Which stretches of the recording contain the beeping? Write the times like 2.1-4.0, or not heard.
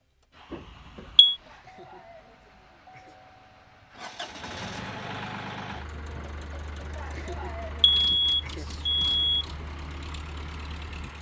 0.5-1.4, 7.8-9.4.